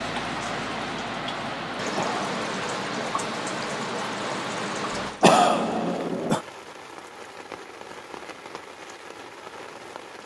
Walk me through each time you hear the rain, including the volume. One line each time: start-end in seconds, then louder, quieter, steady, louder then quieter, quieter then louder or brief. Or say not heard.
0.0-10.2 quieter.